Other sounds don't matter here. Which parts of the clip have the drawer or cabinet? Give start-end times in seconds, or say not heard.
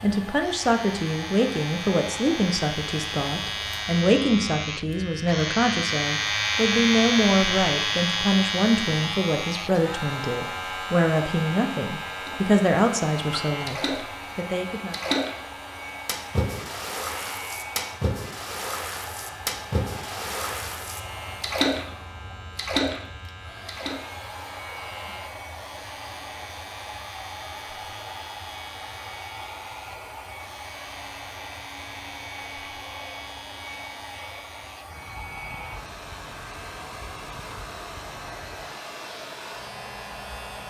not heard.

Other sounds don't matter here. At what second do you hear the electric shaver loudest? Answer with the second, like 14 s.
7 s.